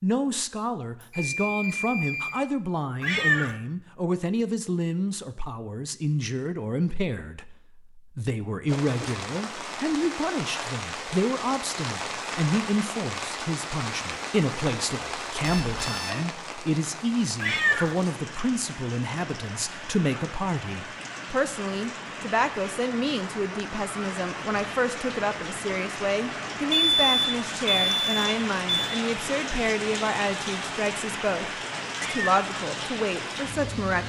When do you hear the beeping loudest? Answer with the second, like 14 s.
27 s.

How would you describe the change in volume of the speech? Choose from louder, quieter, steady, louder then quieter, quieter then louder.
steady.